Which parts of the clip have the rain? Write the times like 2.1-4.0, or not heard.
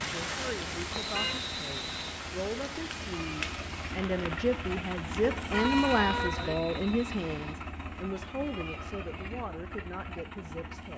0.0-6.3.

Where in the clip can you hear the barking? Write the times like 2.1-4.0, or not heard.
not heard.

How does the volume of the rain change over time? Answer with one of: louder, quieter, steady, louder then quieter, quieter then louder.
quieter.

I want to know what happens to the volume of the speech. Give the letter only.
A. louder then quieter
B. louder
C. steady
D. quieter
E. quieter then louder
A.